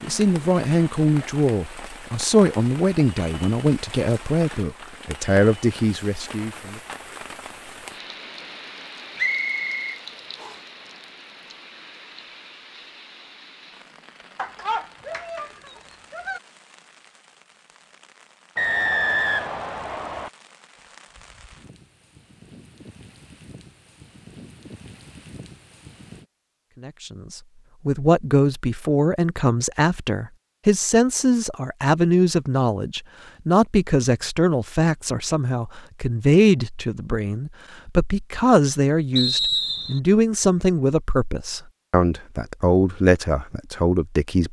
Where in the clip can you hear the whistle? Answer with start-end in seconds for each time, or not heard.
9.2-10.6, 18.6-20.3, 39.1-40.0.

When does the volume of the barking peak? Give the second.
15 s.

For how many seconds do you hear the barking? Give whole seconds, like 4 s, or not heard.
2 s.